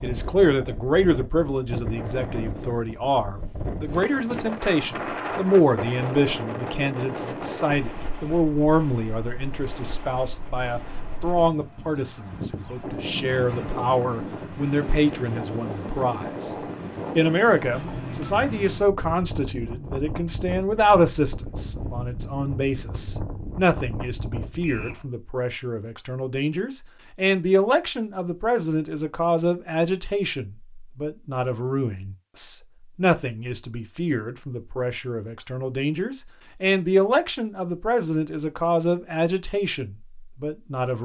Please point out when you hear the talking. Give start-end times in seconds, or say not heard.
0.0-16.6, 17.1-41.0.